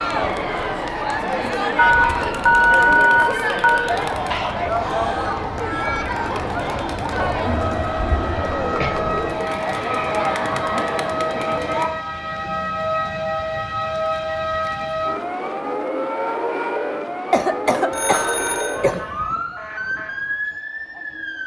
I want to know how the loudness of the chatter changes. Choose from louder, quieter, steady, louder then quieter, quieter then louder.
steady.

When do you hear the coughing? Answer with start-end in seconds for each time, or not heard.
4.3-5.3, 8.0-9.0, 17.3-19.1.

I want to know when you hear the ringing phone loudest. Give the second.
3 s.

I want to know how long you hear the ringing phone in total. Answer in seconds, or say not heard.
3 s.